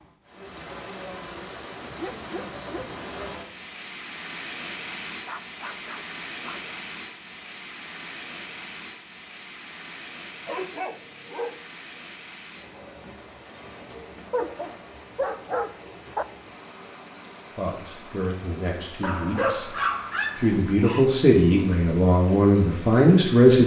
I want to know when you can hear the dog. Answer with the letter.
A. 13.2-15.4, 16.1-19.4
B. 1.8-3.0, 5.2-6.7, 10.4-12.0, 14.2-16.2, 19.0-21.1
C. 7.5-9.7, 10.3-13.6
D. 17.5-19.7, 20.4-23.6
B.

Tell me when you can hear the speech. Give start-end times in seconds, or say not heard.
17.5-19.7, 20.4-23.6.